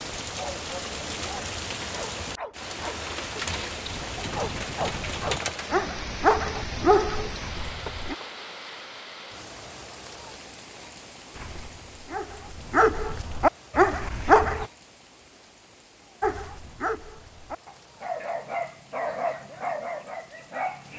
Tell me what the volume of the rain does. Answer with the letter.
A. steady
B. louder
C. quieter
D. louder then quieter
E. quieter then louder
C.